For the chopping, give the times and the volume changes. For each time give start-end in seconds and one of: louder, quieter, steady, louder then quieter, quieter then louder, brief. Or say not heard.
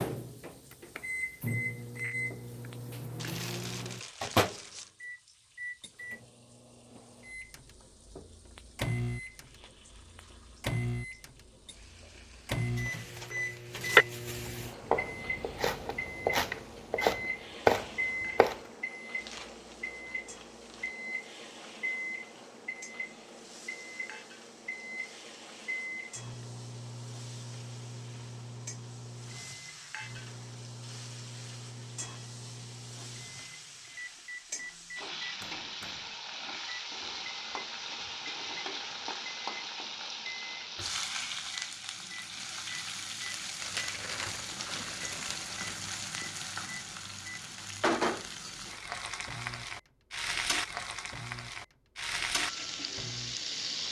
13.1-18.6 quieter then louder.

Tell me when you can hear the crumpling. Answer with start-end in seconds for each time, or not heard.
3.1-4.9, 19.2-20.9, 43.6-45.8.